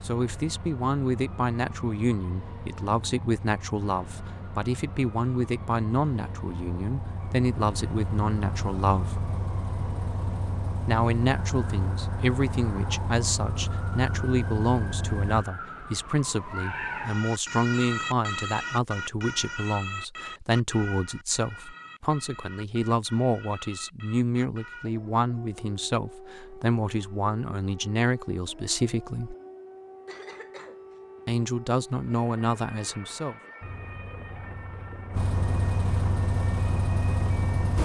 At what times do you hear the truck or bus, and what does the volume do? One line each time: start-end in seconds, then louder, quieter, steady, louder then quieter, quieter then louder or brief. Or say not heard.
0.0-15.4 louder
33.6-37.8 louder.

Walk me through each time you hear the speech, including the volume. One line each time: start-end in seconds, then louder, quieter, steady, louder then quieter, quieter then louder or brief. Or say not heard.
0.0-9.2 steady
10.8-29.4 steady
31.2-33.4 brief.